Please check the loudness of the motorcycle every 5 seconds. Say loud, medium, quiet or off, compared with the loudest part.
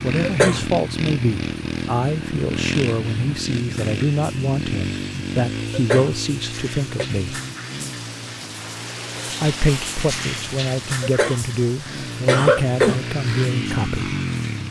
loud, medium, loud.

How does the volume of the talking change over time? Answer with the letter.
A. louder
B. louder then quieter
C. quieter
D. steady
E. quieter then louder
D.